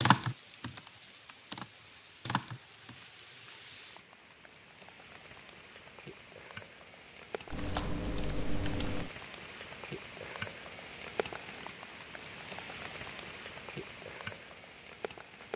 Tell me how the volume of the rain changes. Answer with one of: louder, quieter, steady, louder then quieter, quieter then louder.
louder.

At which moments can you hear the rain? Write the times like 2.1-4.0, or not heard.
0.1-15.5.